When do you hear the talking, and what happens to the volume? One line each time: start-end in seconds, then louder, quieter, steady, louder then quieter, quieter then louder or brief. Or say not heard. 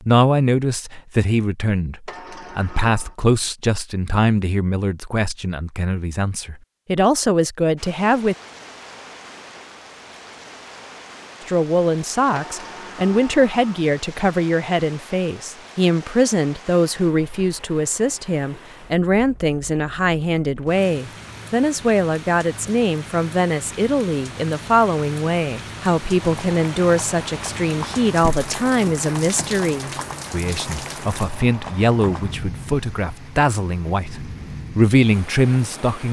0.0-8.3 quieter then louder
11.4-36.0 steady.